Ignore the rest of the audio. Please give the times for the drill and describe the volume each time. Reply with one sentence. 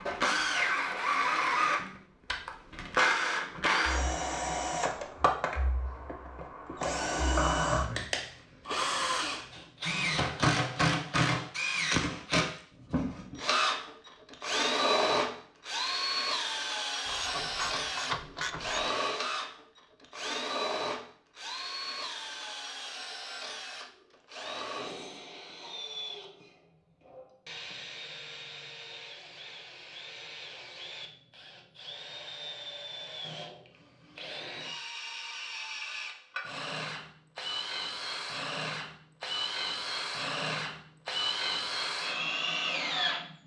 The drill can be heard from 0.0 to 43.4 s, getting quieter then louder.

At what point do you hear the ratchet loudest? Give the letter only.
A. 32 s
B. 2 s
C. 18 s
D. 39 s
C.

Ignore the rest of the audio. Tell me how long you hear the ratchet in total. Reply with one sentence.
The ratchet can be heard for 2 seconds in total.